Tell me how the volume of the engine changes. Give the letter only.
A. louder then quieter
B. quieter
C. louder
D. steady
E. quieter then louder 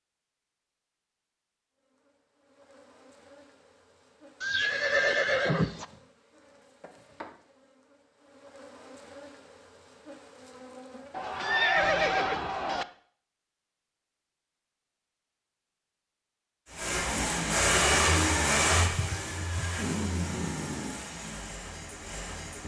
B.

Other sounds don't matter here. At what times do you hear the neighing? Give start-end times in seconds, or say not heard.
4.4-5.8, 11.1-12.8, 18.8-19.9.